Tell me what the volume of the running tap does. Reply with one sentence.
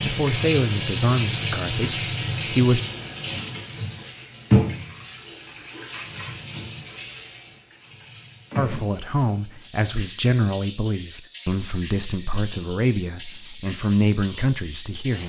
The volume of the running tap goes down.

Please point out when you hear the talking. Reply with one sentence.
You can hear the talking from 0.1 to 2.9 s and from 8.6 to 15.2 s.